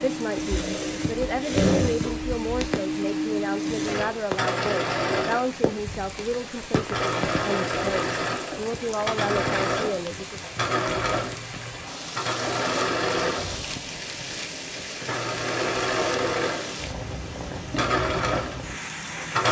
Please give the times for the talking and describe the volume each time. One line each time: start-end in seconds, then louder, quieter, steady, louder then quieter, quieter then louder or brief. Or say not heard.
0.0-10.4 steady.